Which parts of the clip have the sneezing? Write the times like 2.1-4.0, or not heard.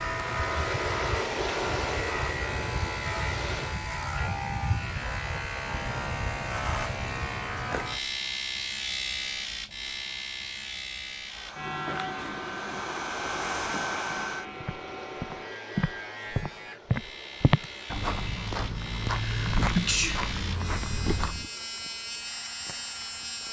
19.1-21.1.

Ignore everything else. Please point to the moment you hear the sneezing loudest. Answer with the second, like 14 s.
20 s.